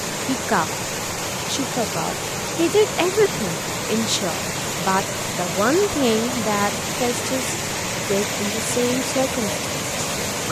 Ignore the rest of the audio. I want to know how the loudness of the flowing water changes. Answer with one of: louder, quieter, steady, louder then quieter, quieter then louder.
steady.